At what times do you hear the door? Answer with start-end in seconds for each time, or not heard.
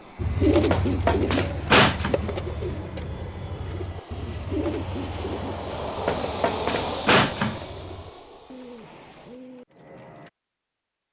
0.3-2.1, 6.0-7.7.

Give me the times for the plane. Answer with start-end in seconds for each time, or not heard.
0.0-9.4.